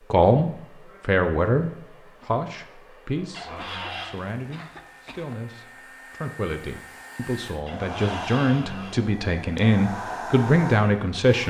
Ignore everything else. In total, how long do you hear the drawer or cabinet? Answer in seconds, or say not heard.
2 s.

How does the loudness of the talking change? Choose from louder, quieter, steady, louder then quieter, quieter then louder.
quieter then louder.